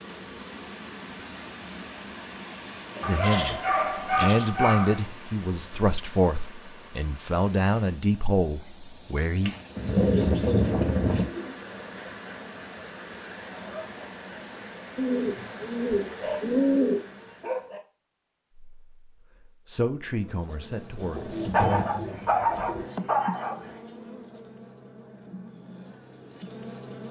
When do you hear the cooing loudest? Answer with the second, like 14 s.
17 s.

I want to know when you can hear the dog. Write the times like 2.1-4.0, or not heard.
3.0-5.0, 9.8-11.3, 16.1-17.8, 21.4-23.8.